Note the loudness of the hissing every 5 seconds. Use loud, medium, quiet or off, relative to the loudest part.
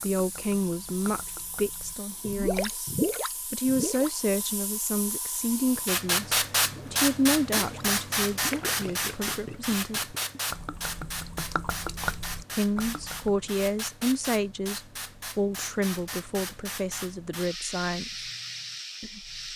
quiet, loud, medium, medium.